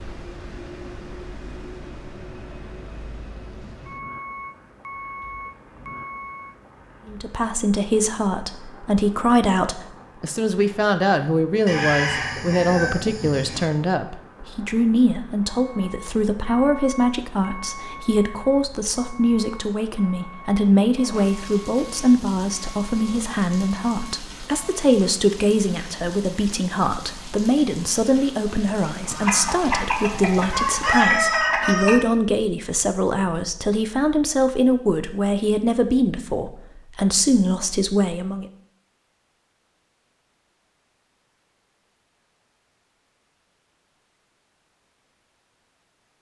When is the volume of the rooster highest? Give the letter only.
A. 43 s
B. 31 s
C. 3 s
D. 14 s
B.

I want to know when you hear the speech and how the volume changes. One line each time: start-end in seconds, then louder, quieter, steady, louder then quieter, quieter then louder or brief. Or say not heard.
7.0-38.5 steady.